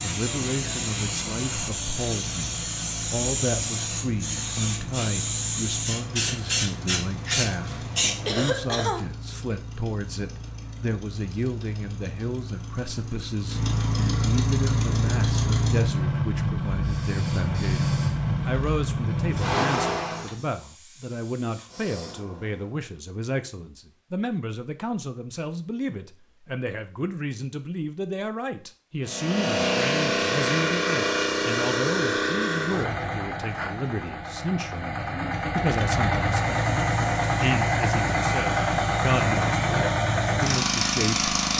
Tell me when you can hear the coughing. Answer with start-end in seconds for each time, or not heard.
8.2-9.6.